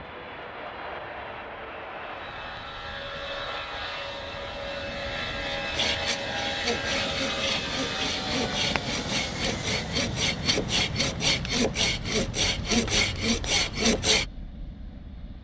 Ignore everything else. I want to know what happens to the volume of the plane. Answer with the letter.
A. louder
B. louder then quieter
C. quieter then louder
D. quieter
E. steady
B.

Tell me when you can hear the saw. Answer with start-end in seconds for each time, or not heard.
5.7-14.2.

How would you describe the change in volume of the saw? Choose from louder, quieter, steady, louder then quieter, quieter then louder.
louder.